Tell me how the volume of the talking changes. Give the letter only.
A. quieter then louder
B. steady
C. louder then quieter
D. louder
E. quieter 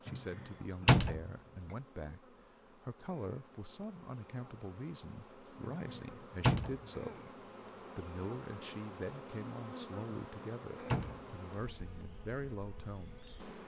B.